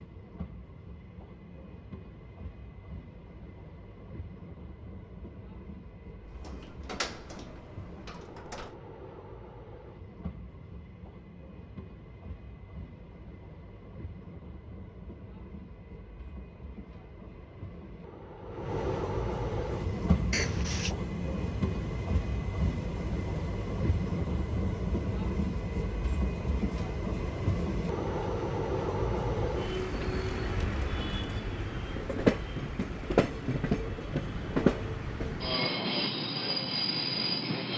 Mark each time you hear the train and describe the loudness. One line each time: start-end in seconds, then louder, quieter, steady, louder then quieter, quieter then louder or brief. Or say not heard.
0.0-37.7 louder.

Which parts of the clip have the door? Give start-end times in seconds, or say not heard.
6.3-8.8, 20.3-20.9.